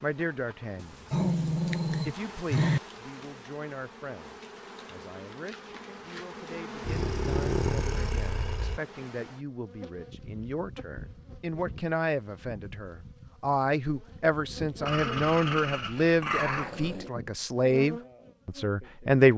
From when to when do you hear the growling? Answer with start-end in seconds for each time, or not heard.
0.8-2.8, 6.8-8.8, 14.8-17.1.